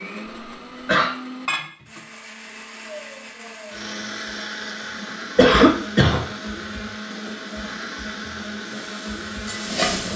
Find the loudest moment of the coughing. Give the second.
6 s.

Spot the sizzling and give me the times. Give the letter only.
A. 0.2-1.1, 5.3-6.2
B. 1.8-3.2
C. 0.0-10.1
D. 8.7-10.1
D.